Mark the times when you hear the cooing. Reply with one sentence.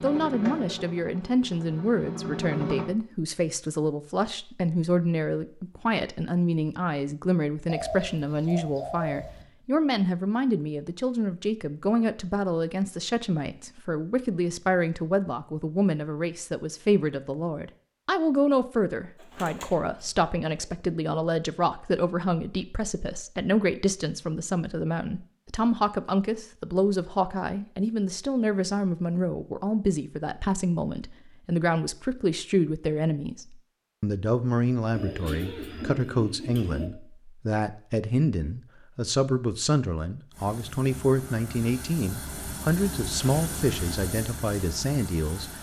The cooing can be heard from 7.7 to 9.4 s, from 19.1 to 20.6 s and from 34.9 to 36.9 s.